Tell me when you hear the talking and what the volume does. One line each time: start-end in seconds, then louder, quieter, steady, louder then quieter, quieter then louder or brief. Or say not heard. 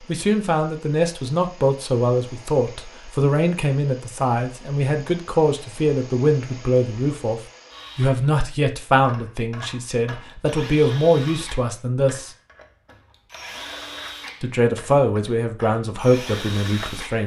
0.1-12.3 steady
14.4-17.2 brief.